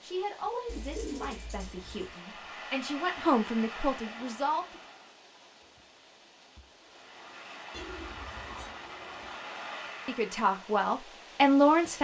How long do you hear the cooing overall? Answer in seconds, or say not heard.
3 s.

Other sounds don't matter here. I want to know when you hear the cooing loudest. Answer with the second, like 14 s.
1 s.